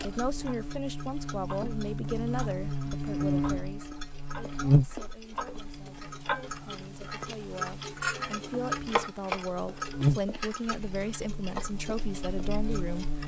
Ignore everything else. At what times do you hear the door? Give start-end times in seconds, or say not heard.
not heard.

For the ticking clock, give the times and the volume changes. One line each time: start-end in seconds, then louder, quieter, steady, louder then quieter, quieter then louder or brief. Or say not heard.
0.0-13.2 louder then quieter.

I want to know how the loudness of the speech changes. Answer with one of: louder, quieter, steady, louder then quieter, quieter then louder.
quieter then louder.